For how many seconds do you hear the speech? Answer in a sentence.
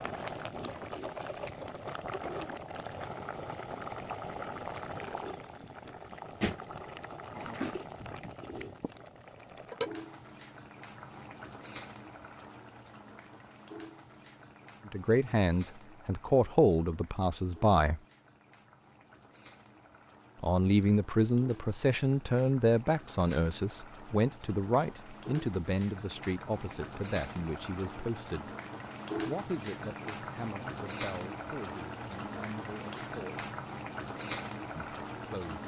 The speech can be heard for 16 seconds in total.